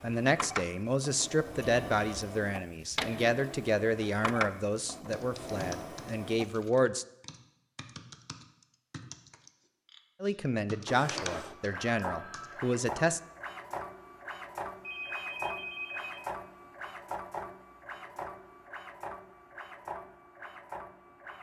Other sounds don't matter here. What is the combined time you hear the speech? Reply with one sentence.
The speech can be heard for 10 seconds in total.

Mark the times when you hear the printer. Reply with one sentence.
The printer can be heard from 0.0 to 6.7 s and from 10.8 to 21.3 s.